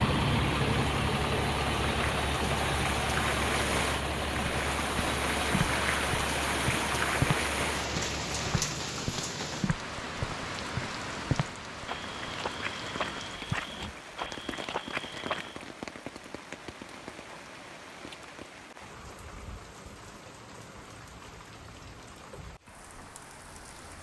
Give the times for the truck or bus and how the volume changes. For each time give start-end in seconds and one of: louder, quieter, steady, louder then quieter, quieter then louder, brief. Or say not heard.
0.0-8.7 quieter.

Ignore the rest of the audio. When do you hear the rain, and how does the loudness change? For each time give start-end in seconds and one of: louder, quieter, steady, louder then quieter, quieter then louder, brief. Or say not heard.
0.0-23.9 quieter.